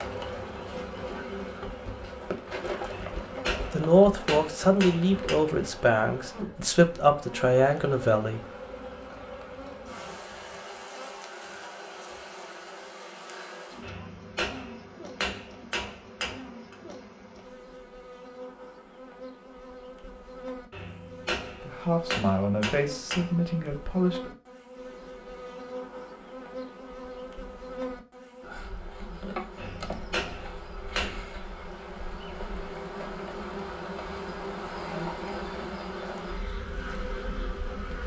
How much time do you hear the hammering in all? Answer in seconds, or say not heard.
10 s.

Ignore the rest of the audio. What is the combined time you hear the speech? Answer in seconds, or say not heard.
7 s.